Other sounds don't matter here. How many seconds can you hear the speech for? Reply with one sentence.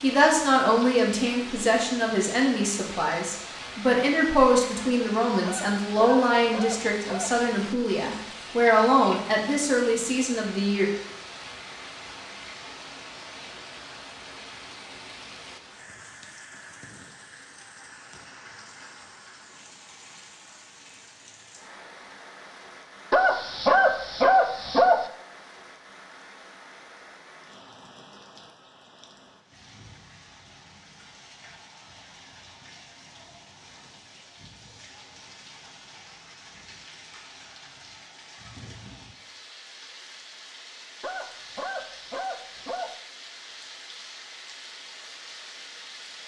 You can hear the speech for 11 seconds altogether.